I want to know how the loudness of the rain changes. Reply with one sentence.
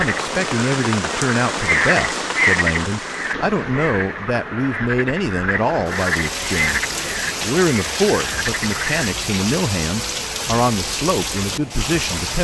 The volume of the rain goes down, then up.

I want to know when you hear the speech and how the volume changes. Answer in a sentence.
You can hear the speech from 0.0 to 12.3 s, at a steady volume.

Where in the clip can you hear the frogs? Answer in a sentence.
The frogs can be heard from 0.0 to 9.1 s.